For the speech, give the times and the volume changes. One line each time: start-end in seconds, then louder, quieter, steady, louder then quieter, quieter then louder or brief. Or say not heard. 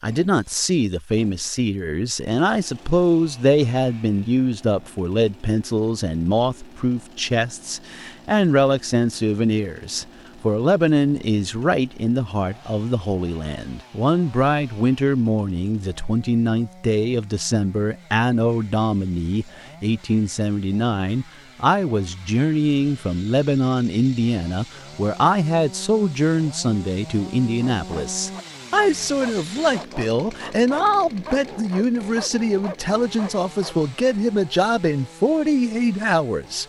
0.0-36.6 steady.